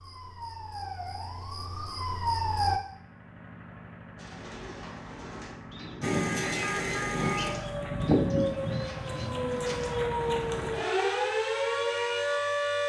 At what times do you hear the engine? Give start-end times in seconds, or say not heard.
2.8-10.8.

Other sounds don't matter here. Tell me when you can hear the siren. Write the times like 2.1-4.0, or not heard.
0.0-2.8, 6.0-12.8.